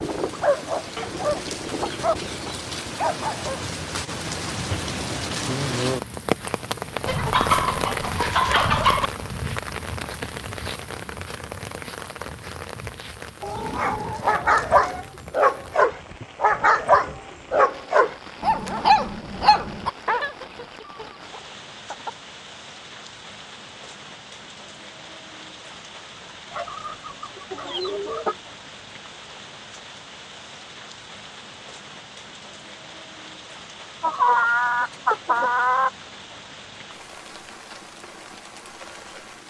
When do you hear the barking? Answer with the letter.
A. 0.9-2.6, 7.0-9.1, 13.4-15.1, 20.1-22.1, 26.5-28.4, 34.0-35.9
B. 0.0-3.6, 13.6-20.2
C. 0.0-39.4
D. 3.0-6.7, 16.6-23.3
B.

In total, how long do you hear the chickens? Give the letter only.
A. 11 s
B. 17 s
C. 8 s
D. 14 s
A.